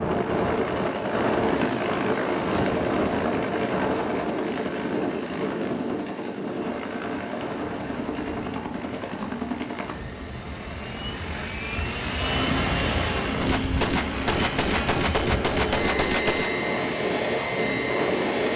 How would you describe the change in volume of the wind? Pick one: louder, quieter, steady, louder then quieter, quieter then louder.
quieter then louder.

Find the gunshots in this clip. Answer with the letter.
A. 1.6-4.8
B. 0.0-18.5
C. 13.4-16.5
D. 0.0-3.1
C.